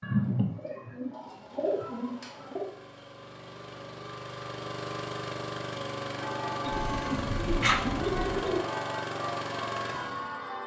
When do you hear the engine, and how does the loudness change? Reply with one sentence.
The engine can be heard from 0.2 to 10.6 s, getting louder.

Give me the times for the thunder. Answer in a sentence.
The thunder can be heard from 6.7 to 8.3 s.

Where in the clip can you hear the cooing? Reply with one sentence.
The cooing can be heard from 0.0 to 2.7 s and from 6.7 to 8.6 s.